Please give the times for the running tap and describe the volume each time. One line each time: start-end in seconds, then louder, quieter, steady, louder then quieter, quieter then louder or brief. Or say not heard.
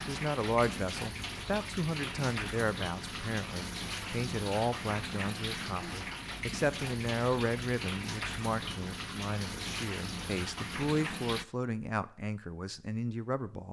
0.0-11.4 steady.